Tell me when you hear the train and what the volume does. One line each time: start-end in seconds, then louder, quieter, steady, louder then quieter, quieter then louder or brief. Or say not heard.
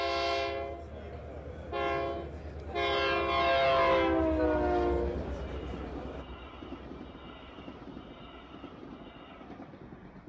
0.0-10.2 louder then quieter.